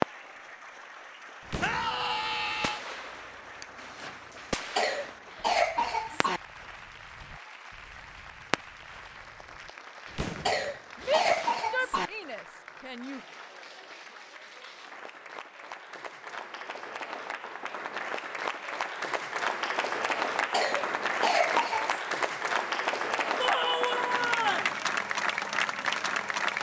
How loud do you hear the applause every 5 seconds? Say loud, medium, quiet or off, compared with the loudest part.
quiet, quiet, quiet, medium, loud, loud.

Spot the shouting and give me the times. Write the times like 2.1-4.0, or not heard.
1.6-2.8, 10.9-13.2, 23.4-24.7.